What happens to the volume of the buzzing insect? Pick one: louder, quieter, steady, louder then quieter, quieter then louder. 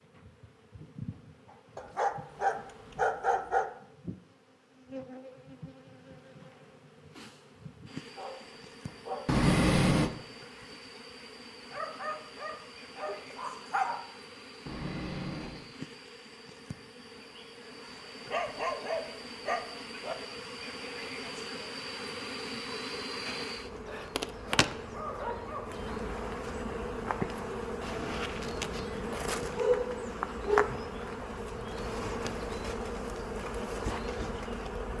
louder.